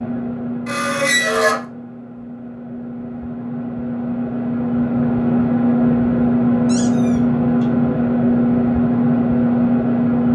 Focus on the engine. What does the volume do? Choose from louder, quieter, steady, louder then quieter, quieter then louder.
louder.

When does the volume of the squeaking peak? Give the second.
1 s.